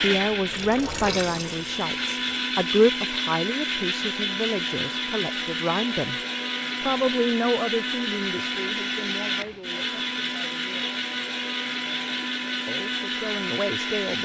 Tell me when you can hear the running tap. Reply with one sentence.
The running tap can be heard from 0.2 to 2.4 s.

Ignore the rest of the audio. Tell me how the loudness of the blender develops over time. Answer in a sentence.
The volume of the blender stays about the same.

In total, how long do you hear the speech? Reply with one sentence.
You can hear the speech for 12 seconds altogether.